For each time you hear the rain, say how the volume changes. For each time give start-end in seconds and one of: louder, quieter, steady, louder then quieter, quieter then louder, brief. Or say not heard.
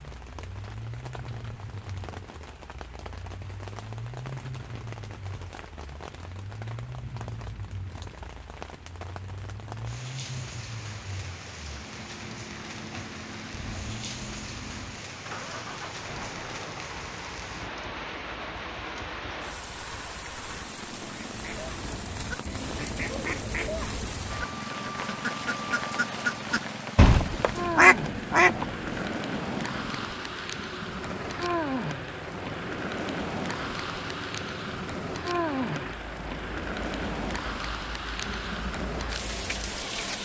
0.0-40.1 louder.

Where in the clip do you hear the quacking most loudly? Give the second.
28 s.